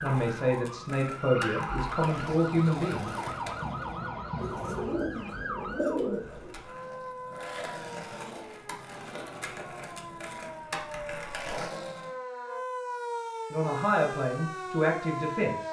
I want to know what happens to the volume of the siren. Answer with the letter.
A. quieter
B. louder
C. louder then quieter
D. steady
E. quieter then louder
E.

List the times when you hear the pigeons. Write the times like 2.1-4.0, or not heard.
4.3-6.5.